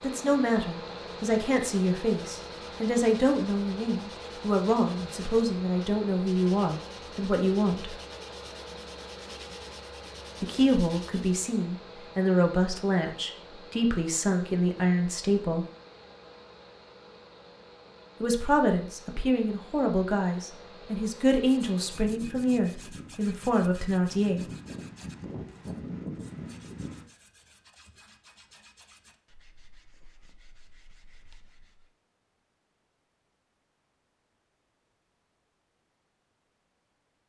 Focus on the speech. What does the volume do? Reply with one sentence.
The volume of the speech stays about the same.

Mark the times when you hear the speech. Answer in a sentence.
You can hear the speech from 0.0 to 8.0 s, from 10.4 to 15.7 s and from 18.2 to 24.4 s.